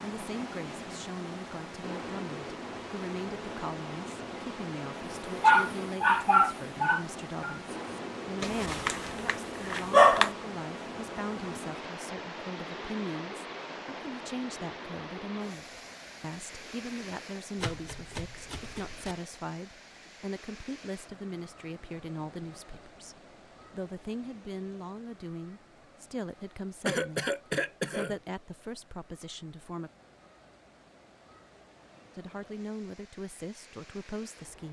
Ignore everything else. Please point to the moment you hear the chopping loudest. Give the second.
18 s.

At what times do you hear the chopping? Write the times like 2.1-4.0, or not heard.
17.6-19.1.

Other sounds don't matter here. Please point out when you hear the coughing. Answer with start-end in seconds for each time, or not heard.
26.9-28.1.